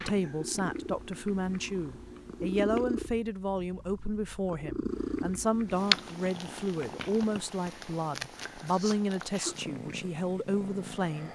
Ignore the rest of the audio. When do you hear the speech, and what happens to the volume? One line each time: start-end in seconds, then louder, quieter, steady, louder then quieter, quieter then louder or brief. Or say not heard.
0.1-11.3 steady.